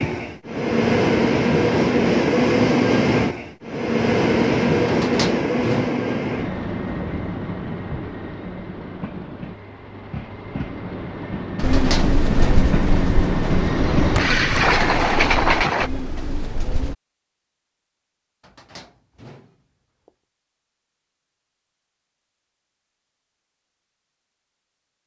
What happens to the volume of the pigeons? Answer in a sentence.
The volume of the pigeons goes down.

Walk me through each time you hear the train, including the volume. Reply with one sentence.
You can hear the train from 0.0 to 15.9 s, getting quieter then louder.